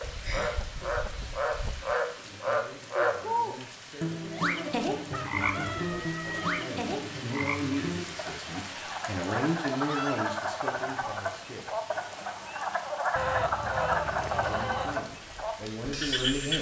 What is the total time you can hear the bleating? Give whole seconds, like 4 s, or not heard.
not heard.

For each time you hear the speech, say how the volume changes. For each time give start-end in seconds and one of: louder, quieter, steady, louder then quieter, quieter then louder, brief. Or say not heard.
2.1-11.9 louder
14.3-16.5 brief.